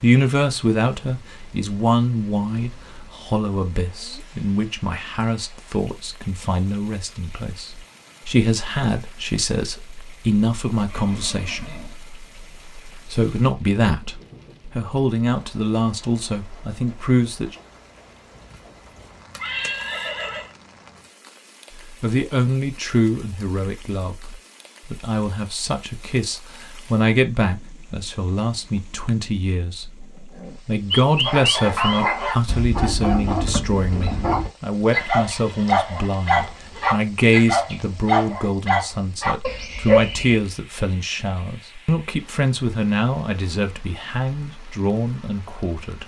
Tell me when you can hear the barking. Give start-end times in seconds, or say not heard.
30.9-40.4.